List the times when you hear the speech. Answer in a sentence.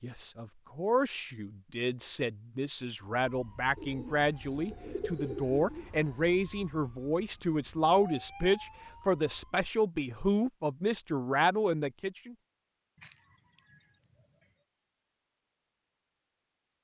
You can hear the speech from 0.0 to 12.3 s.